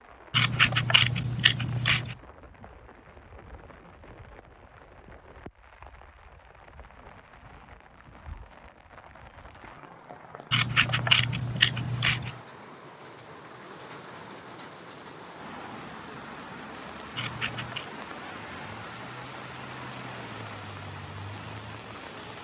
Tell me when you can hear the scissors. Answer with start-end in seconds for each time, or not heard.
0.3-2.1, 10.5-12.3, 17.1-17.9.